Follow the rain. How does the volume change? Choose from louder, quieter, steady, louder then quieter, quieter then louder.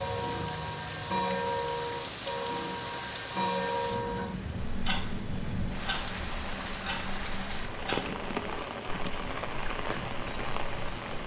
steady.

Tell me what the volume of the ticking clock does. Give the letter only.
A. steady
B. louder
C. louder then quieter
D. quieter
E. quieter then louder
D.